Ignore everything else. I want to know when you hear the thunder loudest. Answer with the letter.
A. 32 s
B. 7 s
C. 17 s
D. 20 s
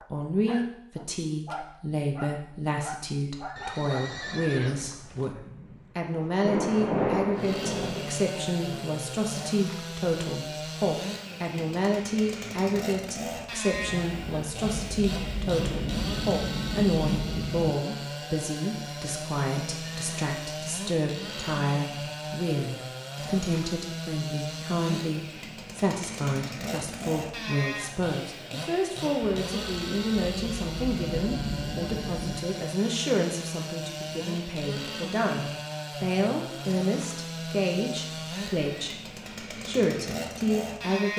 B.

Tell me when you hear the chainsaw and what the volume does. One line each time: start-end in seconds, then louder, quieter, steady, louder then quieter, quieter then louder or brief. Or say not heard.
7.3-41.1 steady.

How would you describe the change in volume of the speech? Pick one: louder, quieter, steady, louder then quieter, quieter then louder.
steady.